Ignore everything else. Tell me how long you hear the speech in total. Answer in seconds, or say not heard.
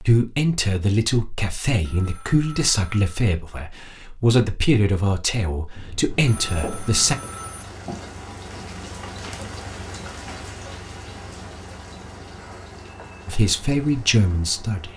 9 s.